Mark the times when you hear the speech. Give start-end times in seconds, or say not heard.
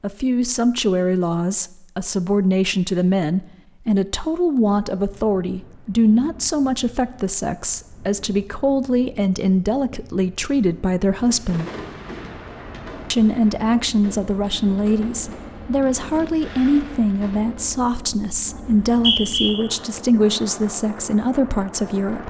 0.0-11.7, 13.1-22.2.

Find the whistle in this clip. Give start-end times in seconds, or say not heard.
18.6-19.5.